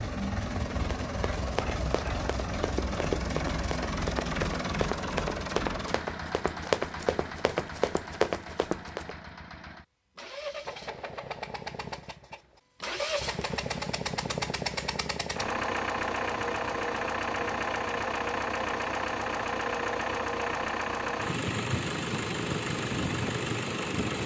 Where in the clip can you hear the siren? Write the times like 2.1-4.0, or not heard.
not heard.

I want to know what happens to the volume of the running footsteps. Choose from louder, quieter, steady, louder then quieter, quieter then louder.
louder.